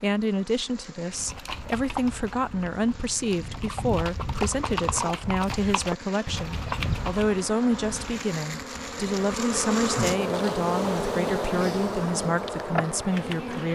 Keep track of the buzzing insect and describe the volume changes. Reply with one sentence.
The volume of the buzzing insect goes up.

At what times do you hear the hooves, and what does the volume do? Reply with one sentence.
The hooves can be heard from 1.1 to 7.5 s, getting quieter then louder.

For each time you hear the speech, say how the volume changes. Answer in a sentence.
You can hear the speech from 0.0 to 13.7 s, at a steady volume.